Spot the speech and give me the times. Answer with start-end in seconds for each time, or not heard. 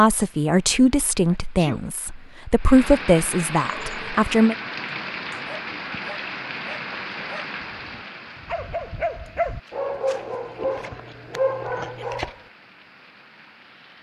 0.0-4.5.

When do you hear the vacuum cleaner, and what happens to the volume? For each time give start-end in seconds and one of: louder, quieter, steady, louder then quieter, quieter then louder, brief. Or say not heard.
not heard.